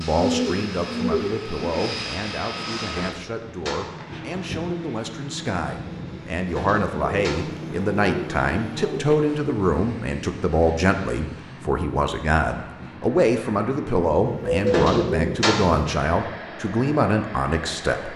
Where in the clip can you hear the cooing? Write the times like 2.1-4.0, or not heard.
0.1-1.8, 6.8-9.3, 14.2-15.8.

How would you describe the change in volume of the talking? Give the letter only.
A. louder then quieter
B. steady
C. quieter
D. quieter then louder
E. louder
E.